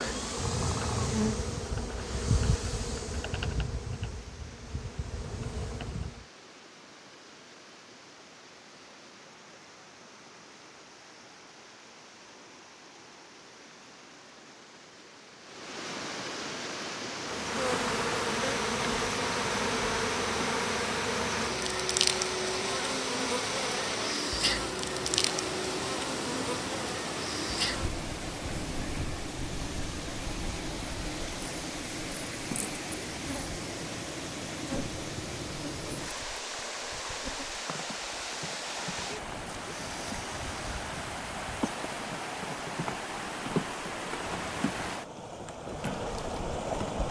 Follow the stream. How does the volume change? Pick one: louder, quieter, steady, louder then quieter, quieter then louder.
louder.